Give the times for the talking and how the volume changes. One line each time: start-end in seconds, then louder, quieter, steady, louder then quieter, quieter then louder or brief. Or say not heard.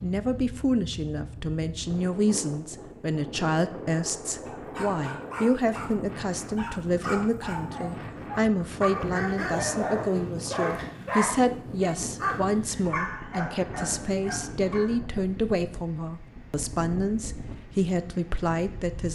0.0-19.1 steady.